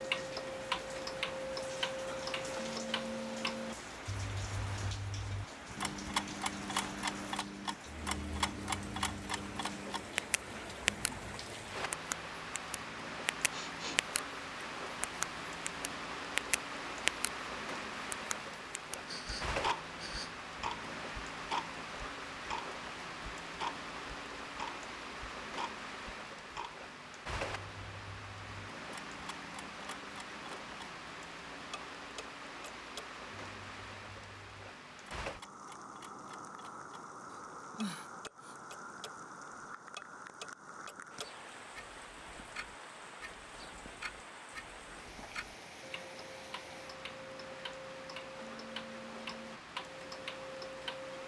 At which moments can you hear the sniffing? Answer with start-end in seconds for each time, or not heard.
13.5-14.0, 19.1-20.4, 37.3-38.5.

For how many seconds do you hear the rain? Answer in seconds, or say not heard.
51 s.